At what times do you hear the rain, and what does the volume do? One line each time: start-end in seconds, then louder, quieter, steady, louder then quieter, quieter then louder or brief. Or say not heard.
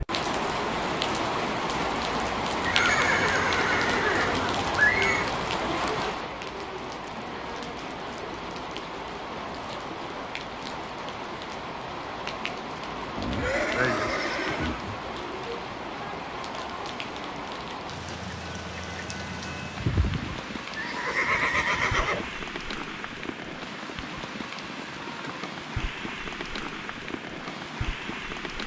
0.0-28.6 quieter.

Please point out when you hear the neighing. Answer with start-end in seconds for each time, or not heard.
2.6-5.3, 13.2-15.0, 19.8-22.4.